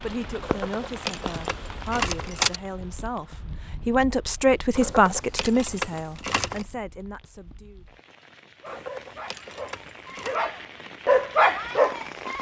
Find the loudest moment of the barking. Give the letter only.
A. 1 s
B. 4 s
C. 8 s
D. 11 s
D.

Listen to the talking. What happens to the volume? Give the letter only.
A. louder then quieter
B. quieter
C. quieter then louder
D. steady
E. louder
A.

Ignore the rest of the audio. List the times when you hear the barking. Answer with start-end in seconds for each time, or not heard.
8.6-12.3.